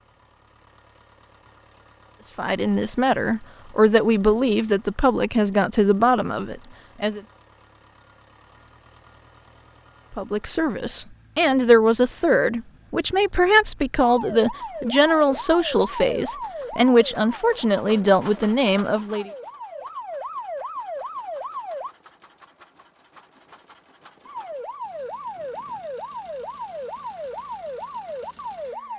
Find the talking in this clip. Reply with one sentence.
You can hear the talking from 2.4 to 7.2 s and from 10.1 to 19.3 s.